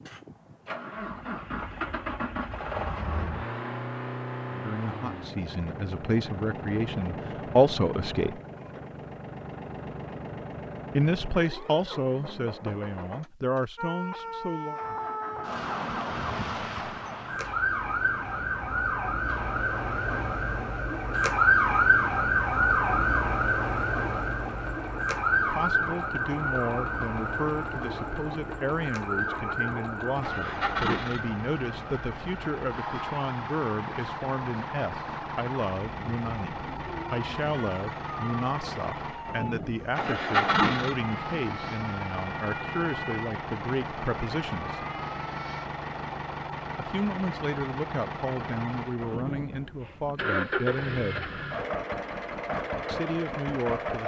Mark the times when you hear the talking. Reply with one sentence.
The talking can be heard from 4.5 to 8.4 s, from 10.9 to 14.8 s, from 25.4 to 44.9 s, from 46.8 to 51.3 s and from 52.9 to 54.0 s.